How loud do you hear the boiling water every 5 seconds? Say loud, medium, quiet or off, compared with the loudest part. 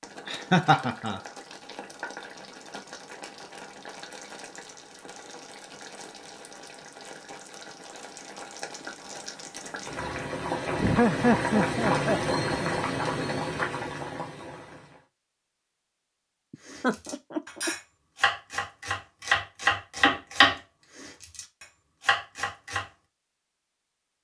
quiet, quiet, loud, off, off.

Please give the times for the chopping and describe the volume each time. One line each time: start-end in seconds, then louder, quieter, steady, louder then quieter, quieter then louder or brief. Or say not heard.
16.6-22.9 louder then quieter.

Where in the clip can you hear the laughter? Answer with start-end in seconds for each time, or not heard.
0.2-1.2, 10.8-13.4, 16.5-17.7.